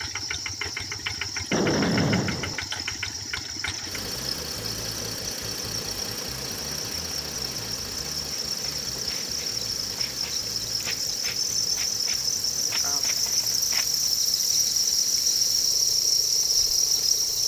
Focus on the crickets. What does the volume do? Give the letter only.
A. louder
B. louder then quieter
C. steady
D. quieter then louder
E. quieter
A.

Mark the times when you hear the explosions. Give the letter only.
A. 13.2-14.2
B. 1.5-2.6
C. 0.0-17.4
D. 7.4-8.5
B.